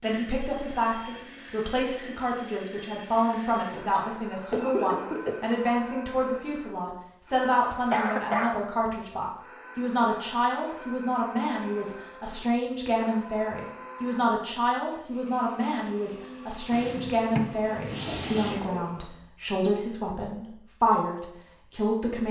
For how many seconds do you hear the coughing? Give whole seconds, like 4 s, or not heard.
3 s.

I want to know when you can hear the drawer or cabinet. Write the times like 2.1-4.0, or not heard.
16.7-18.7.